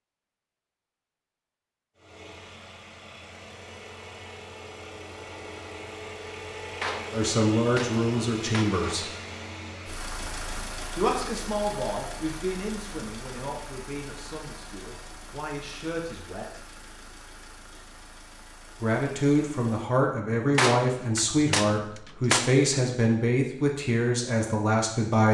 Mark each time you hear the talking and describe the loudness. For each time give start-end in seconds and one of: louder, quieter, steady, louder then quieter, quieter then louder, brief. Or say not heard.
7.1-9.1 brief
10.9-16.6 quieter then louder
18.8-25.2 steady.